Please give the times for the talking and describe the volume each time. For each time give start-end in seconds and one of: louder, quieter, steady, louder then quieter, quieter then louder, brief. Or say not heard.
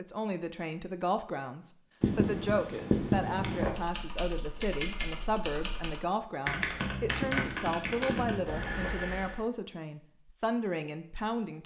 0.0-11.6 steady.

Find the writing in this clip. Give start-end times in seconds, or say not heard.
2.0-3.7, 7.2-8.9.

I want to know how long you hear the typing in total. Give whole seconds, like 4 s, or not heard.
6 s.